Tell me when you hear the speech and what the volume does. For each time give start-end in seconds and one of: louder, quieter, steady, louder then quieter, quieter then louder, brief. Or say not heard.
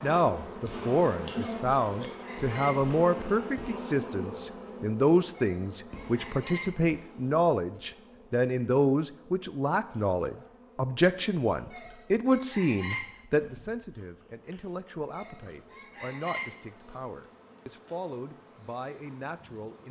0.0-19.8 quieter.